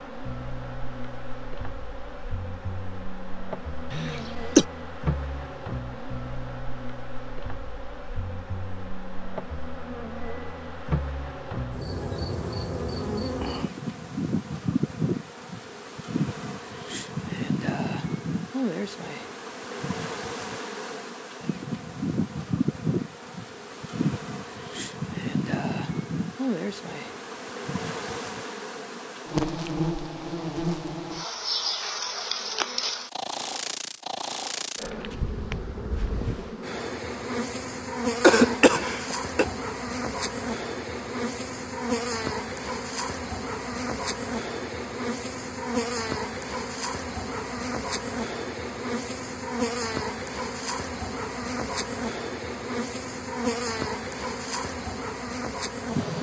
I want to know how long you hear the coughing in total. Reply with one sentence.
You can hear the coughing for 2 seconds altogether.